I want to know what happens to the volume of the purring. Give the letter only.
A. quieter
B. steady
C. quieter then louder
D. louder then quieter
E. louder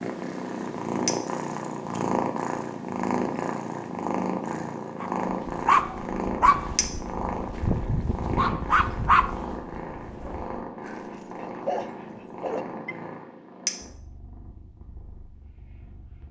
A.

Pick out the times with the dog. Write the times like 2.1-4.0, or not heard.
5.0-12.9.